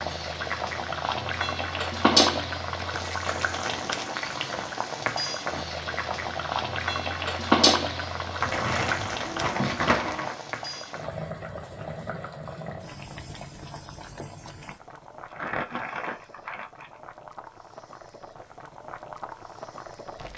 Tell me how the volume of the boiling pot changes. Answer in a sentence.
The loudness of the boiling pot goes down.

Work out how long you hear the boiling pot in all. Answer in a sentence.
You can hear the boiling pot for 20 seconds altogether.